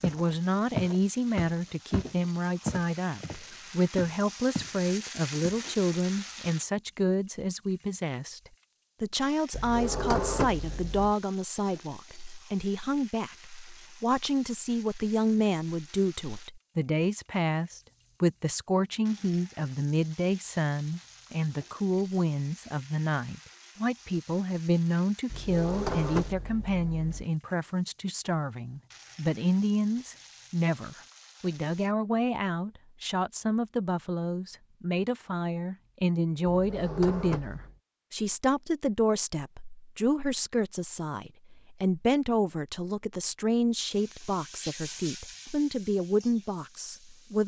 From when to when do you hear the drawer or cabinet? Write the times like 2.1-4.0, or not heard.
9.5-11.2, 25.3-27.2, 36.5-37.8.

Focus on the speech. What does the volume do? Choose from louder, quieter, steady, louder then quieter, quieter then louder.
steady.